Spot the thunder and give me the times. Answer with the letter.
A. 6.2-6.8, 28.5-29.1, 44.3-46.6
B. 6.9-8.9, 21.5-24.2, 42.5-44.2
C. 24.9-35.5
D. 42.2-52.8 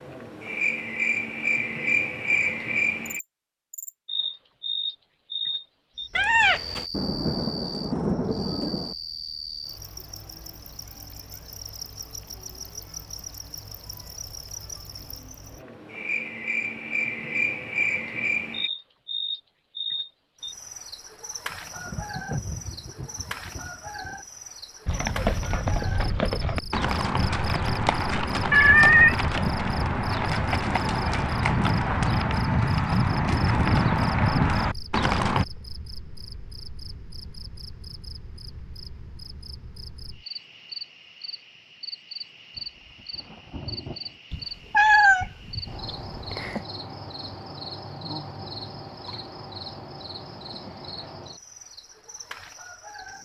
B.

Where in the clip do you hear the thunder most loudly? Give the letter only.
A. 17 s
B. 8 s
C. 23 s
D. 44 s
B.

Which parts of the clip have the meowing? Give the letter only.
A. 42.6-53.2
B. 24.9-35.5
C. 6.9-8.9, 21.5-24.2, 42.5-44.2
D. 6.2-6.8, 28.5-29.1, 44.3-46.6
D.